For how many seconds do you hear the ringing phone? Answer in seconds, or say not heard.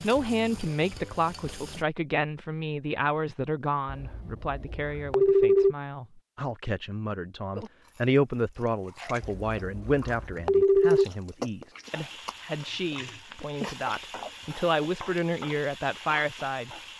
4 s.